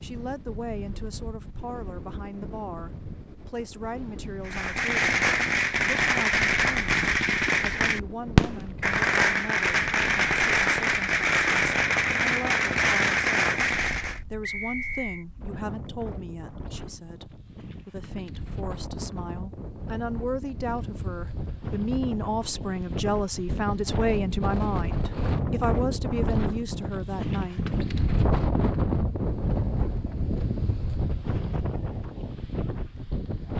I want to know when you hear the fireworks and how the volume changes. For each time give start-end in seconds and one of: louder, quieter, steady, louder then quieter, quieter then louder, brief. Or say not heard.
4.5-14.2 steady.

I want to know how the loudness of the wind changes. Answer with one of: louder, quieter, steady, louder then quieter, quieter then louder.
louder.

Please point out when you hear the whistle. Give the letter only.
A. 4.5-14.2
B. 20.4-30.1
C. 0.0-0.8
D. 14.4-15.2
D.